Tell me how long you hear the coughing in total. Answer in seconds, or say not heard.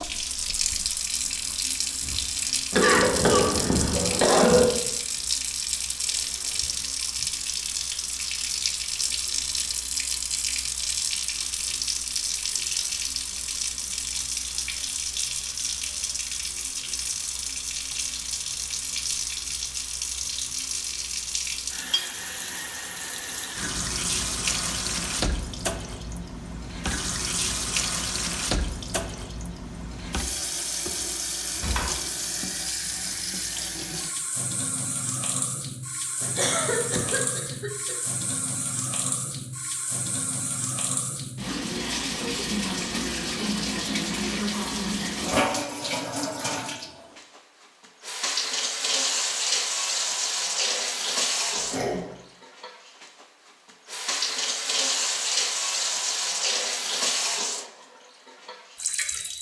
4 s.